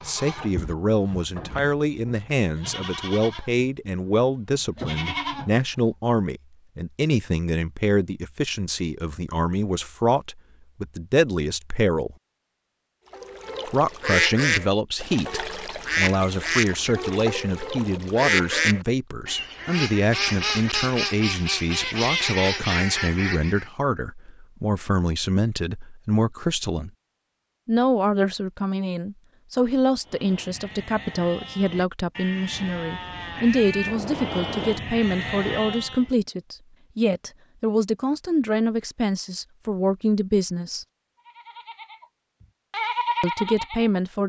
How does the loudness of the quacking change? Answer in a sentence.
The volume of the quacking stays about the same.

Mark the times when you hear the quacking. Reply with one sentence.
You can hear the quacking from 13.1 to 23.6 s.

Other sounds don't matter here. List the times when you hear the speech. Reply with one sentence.
The speech can be heard from 0.0 to 12.2 s, from 13.7 to 26.9 s, from 27.6 to 40.9 s and from 43.2 to 44.2 s.